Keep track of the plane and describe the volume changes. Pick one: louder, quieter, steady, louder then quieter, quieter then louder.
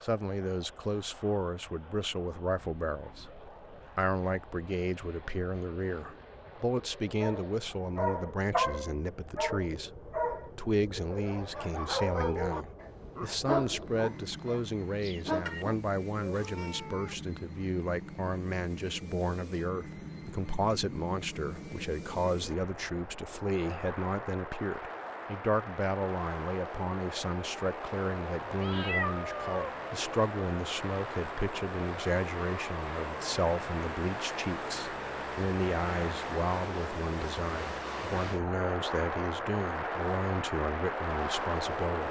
louder.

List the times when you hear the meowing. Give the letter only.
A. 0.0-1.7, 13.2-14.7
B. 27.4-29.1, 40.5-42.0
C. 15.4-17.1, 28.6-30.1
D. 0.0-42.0
C.